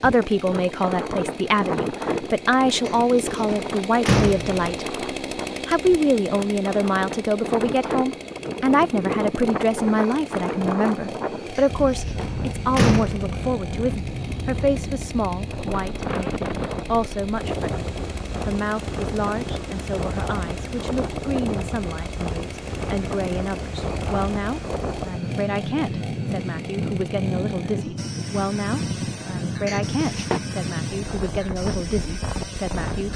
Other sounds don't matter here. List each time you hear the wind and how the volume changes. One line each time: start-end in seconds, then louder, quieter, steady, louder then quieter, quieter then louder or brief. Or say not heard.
0.0-33.1 steady.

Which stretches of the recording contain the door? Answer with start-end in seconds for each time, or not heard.
2.9-4.7, 11.6-13.3, 29.6-30.4.